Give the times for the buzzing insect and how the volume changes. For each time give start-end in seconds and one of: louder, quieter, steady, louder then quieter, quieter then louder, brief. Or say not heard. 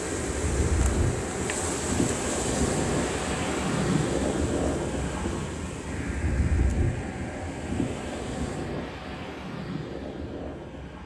0.0-8.7 quieter.